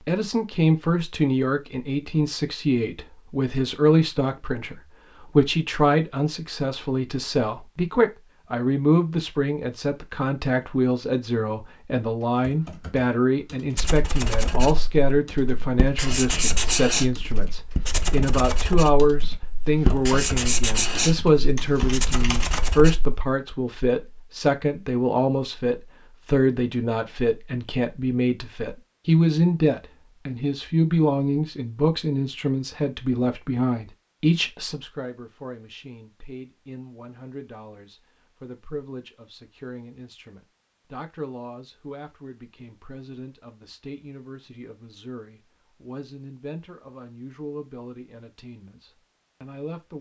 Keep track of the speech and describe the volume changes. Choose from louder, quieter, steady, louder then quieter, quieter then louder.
quieter.